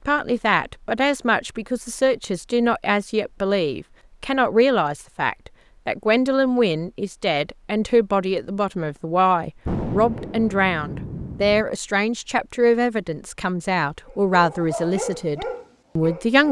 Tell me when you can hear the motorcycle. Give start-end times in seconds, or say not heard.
not heard.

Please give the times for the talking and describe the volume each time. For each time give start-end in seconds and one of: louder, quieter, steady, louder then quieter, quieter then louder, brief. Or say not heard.
0.1-16.4 steady.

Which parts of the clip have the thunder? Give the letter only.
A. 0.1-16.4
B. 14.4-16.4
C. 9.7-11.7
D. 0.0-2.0
C.